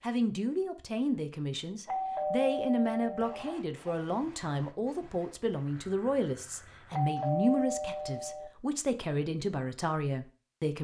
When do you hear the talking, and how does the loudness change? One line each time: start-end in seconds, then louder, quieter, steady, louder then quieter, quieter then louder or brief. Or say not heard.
0.0-10.7 steady.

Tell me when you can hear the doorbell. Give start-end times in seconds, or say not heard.
1.9-3.5, 6.9-8.5.